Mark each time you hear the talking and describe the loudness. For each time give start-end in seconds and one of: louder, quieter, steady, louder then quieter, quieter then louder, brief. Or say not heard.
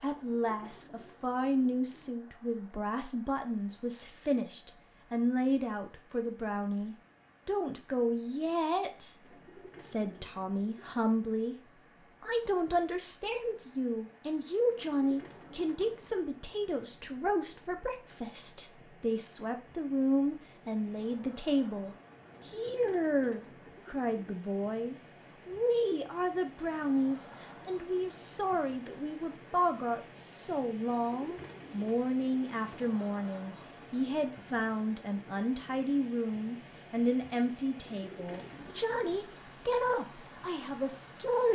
0.0-11.6 steady
12.2-41.5 steady.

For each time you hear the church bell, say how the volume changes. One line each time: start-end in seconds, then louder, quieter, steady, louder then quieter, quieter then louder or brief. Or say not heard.
not heard.